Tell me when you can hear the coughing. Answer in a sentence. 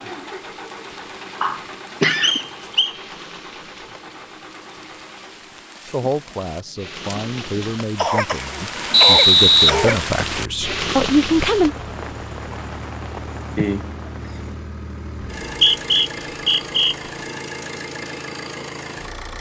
The coughing can be heard from 1.4 to 2.4 s, from 8.0 to 10.0 s and from 13.6 to 14.3 s.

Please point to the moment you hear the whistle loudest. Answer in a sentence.
The volume of the whistle peaks at 9 seconds.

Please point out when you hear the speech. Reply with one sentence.
The speech can be heard from 5.8 to 11.7 s.